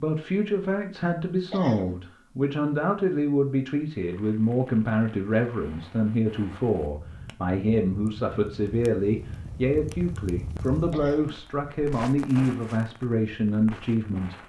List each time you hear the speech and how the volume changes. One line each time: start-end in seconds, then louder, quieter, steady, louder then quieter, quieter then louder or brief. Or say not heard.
0.0-14.4 steady.